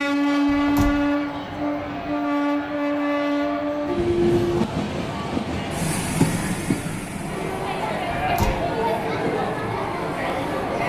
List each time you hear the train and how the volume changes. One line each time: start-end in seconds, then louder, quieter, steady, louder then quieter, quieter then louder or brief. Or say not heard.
0.0-10.8 quieter.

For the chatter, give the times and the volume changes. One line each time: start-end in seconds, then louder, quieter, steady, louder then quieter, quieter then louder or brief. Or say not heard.
0.2-10.8 louder.